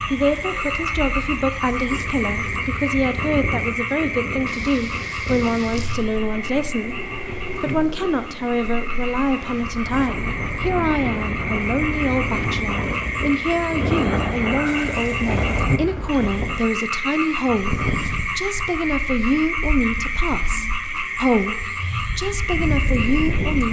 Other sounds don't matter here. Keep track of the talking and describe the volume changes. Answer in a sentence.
The volume of the talking stays about the same.